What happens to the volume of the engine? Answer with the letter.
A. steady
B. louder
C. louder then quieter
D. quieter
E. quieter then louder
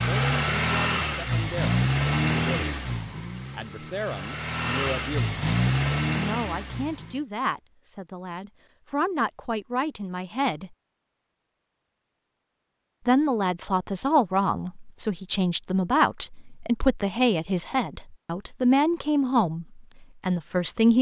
E.